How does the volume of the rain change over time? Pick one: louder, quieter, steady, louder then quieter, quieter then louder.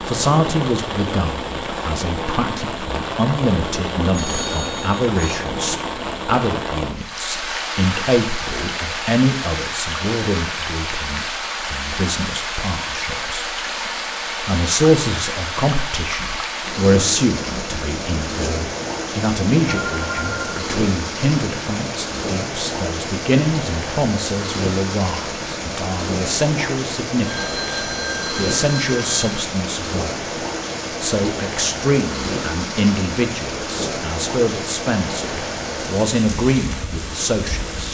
steady.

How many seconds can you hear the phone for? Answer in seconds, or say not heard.
4 s.